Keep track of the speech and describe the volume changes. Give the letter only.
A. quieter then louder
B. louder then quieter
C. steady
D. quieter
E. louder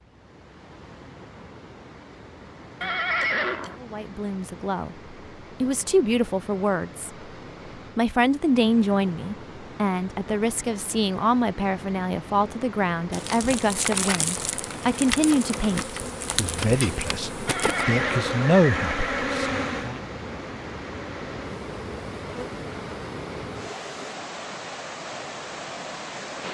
C.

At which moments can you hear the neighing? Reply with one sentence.
You can hear the neighing from 2.8 to 3.8 s and from 17.4 to 19.2 s.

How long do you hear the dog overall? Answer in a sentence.
You can't hear the dog here.